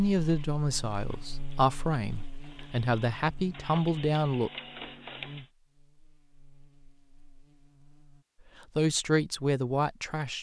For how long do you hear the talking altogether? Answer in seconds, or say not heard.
6 s.